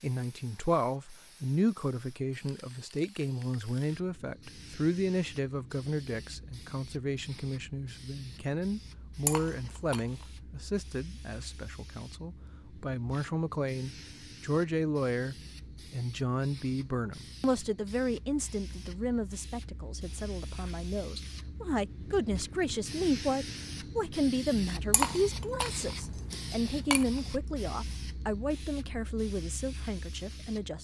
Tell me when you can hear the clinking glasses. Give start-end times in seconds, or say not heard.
9.2-10.2, 24.9-27.1.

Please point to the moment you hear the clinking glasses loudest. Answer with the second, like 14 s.
25 s.